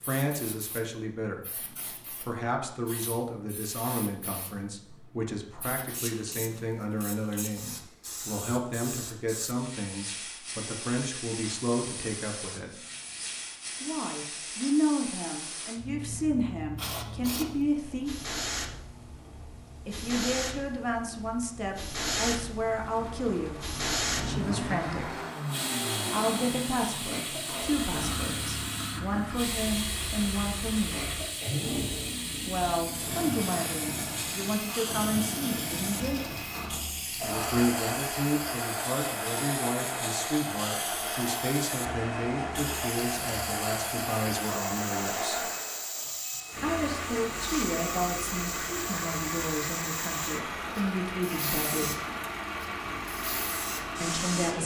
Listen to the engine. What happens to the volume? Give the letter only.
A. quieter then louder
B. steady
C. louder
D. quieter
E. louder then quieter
B.